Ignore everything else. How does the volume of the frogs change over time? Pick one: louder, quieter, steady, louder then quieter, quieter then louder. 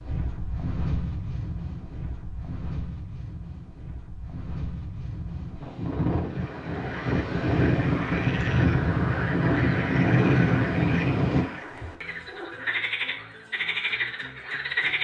louder.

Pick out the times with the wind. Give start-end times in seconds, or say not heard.
0.0-11.4.